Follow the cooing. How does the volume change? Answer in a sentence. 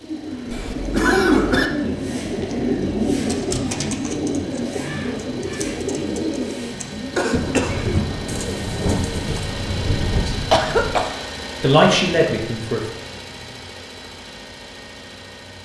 The volume of the cooing goes down.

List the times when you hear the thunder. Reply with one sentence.
You can hear the thunder from 7.3 to 11.0 s.